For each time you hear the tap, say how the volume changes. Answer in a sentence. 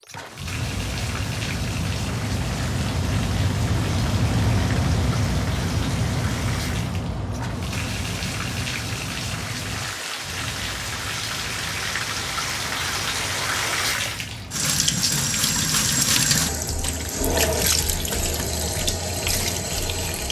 The tap can be heard from 0.0 to 20.2 s, getting louder.